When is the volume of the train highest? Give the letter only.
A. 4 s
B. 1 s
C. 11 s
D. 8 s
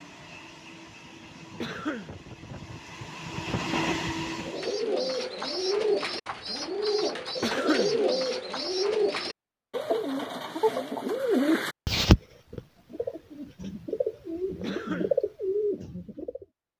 A.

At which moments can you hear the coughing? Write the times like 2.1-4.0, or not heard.
1.6-2.1, 7.4-8.0, 14.6-15.2.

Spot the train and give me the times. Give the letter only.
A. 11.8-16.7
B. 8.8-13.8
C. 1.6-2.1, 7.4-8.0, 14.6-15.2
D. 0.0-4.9
D.